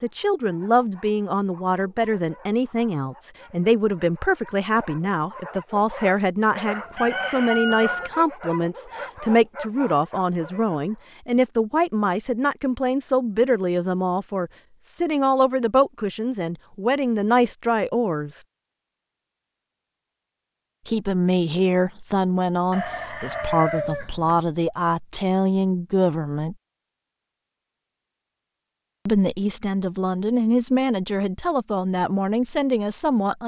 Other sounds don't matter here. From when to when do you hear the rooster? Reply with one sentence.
The rooster can be heard from 6.7 to 8.1 s and from 22.7 to 24.4 s.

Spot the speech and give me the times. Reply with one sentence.
The speech can be heard from 0.0 to 18.4 s, from 20.9 to 26.6 s and from 29.1 to 33.4 s.